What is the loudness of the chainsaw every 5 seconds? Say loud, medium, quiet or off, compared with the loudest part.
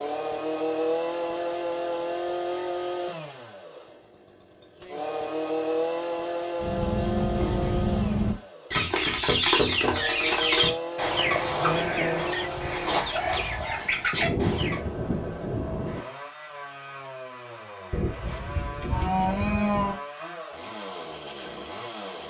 loud, loud, loud, medium, medium.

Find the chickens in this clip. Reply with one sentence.
You can hear the chickens from 6.6 to 14.8 s.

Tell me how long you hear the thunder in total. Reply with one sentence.
The thunder can be heard for 2 seconds in total.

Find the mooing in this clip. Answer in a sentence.
You can hear the mooing from 17.9 to 19.9 s.